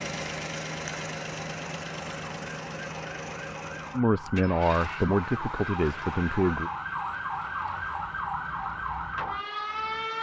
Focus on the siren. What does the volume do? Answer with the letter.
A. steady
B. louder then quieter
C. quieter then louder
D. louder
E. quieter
D.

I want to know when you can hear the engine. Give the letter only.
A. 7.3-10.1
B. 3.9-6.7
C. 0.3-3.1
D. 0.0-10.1
D.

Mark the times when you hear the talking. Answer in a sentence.
You can hear the talking from 3.9 to 6.7 s.